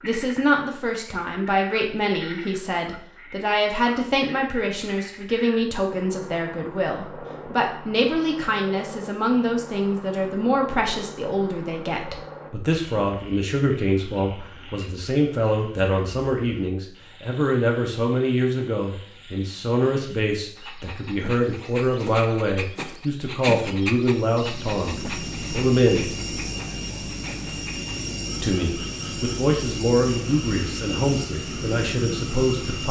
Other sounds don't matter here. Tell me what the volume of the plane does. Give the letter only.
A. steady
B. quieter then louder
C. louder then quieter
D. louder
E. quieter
A.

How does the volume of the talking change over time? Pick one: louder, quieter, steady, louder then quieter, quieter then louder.
steady.